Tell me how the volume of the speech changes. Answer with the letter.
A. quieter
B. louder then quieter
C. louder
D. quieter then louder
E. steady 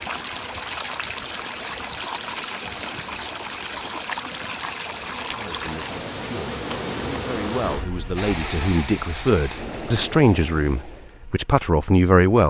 C.